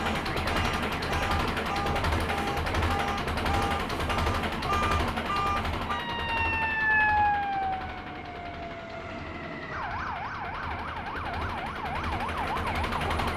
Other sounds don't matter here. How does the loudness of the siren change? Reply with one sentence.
The loudness of the siren goes up, then down.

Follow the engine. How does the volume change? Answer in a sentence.
The loudness of the engine goes down, then up.